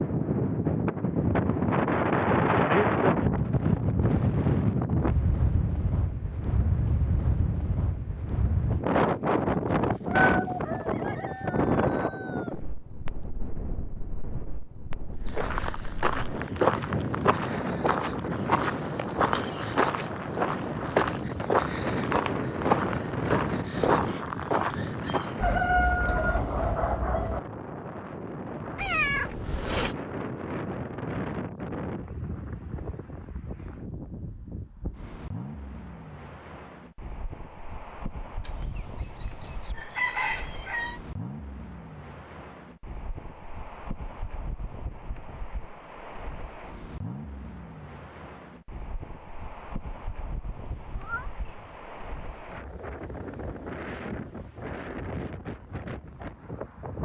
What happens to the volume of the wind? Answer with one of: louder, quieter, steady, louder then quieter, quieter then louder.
quieter.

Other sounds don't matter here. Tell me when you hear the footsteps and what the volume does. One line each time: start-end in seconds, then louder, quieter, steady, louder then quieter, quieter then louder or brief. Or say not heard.
15.2-25.4 steady.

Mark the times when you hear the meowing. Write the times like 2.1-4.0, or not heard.
10.1-11.4, 28.8-29.9, 50.6-51.8.